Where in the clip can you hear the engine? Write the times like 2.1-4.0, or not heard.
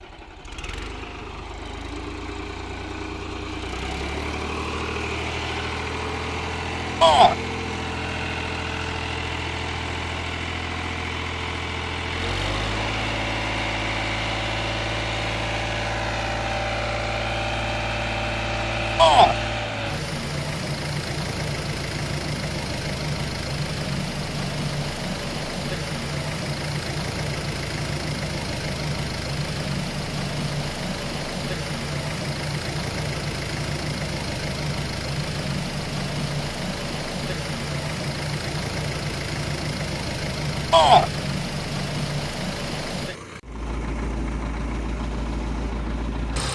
0.0-46.5.